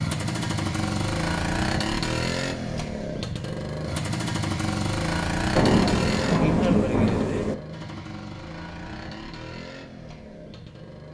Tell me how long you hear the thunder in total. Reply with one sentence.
You can hear the thunder for 2 seconds altogether.